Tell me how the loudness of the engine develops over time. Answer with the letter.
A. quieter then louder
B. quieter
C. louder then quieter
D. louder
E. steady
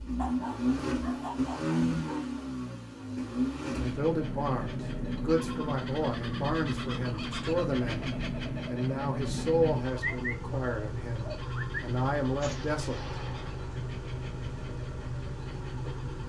B.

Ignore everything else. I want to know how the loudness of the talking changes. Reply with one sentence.
The volume of the talking stays about the same.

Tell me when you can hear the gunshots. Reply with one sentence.
The gunshots can be heard from 12.4 to 13.8 s.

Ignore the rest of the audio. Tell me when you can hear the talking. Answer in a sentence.
The talking can be heard from 3.8 to 13.2 s.